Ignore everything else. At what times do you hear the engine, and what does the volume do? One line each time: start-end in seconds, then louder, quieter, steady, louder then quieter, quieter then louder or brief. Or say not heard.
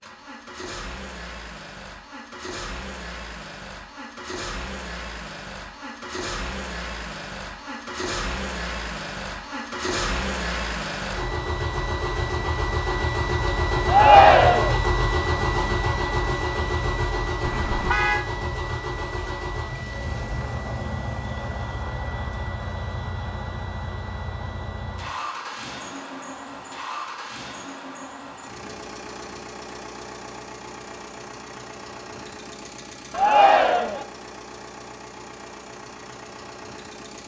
0.0-37.2 louder then quieter.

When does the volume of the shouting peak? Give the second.
14 s.